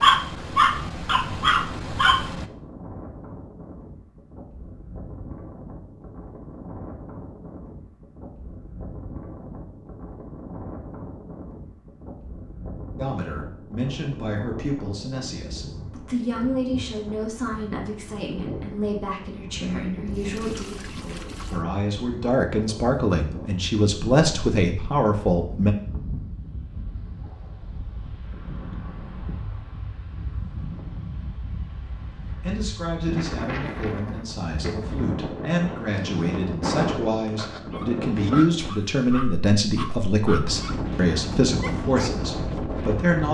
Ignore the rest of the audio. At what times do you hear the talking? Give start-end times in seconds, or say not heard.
12.9-25.8, 32.4-43.2.